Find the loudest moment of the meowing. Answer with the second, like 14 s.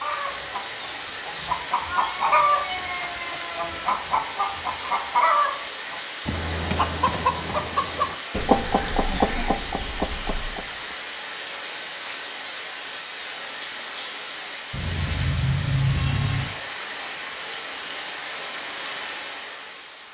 16 s.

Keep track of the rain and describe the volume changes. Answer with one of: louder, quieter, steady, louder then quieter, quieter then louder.
steady.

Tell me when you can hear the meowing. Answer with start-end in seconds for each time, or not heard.
1.9-3.9, 8.6-10.4, 14.7-16.6.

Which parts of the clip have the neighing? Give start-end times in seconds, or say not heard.
not heard.